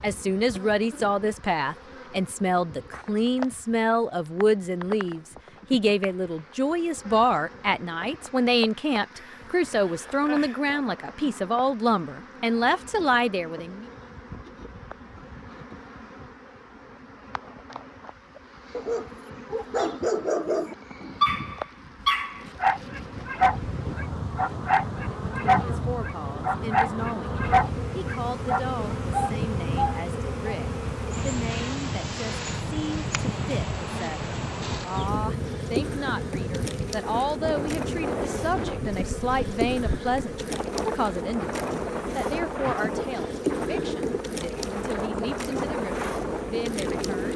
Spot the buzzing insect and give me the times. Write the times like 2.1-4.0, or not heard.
0.0-47.3.